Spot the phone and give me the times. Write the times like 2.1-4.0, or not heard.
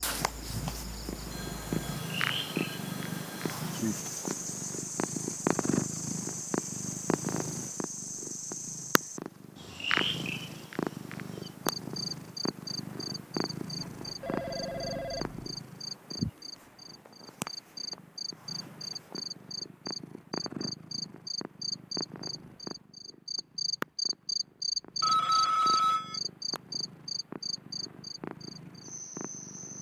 1.3-3.6, 13.8-15.6, 25.0-26.2.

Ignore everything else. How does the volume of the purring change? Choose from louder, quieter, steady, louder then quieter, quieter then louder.
quieter.